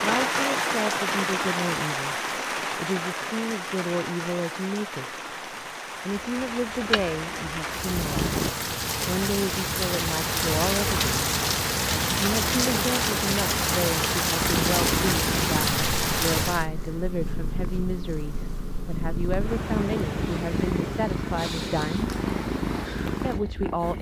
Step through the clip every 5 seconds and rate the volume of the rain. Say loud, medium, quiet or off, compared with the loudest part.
loud, medium, loud, loud, off.